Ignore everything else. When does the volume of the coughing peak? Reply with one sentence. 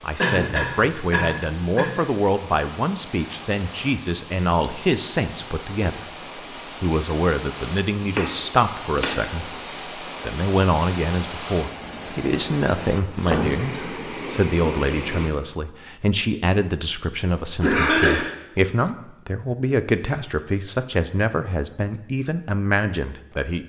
The loudest moment of the coughing is at 18 seconds.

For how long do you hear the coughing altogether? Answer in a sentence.
The coughing can be heard for 3 seconds in total.